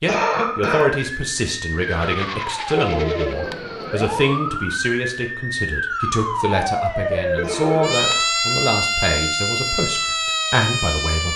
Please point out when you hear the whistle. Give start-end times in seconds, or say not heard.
not heard.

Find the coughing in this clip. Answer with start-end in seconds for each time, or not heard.
0.1-0.9, 7.4-8.3.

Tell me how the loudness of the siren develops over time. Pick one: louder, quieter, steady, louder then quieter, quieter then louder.
louder.